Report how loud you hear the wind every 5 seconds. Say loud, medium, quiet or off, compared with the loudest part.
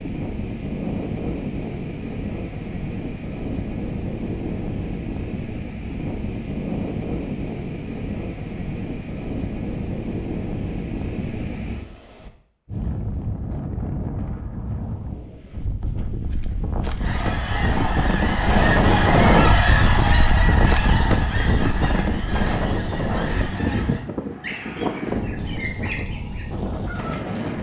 medium, medium, medium, loud, loud, medium.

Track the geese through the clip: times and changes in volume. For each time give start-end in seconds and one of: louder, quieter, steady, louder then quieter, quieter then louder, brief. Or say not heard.
16.9-27.5 quieter.